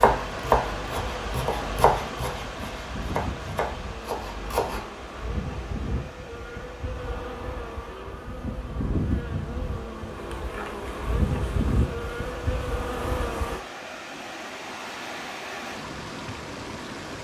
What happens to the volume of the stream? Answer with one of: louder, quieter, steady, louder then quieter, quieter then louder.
quieter then louder.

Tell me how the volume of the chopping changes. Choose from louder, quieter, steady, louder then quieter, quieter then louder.
quieter.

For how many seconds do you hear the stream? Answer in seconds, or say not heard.
17 s.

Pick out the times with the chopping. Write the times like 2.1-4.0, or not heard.
0.0-4.8.